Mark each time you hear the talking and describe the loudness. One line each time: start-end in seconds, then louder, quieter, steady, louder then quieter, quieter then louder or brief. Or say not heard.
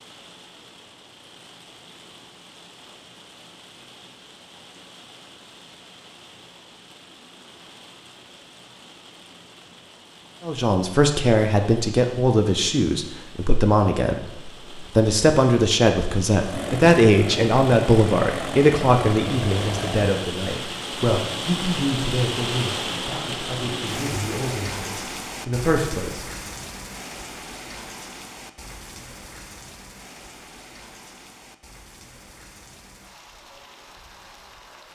10.4-26.2 quieter.